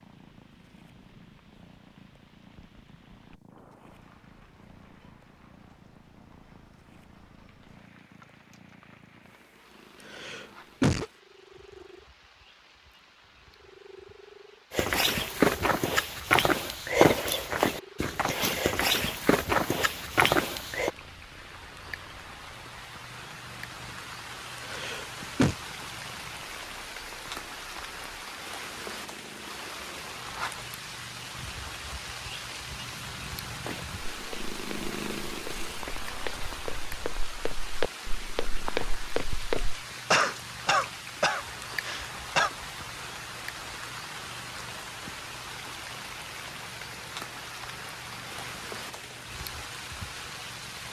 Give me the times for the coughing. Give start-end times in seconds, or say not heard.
10.0-11.1, 24.6-25.6, 40.1-42.5.